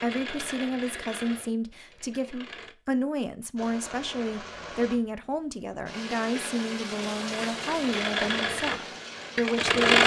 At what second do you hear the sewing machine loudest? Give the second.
10 s.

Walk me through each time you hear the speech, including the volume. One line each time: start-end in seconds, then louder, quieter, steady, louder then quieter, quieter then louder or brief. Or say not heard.
0.0-10.0 steady.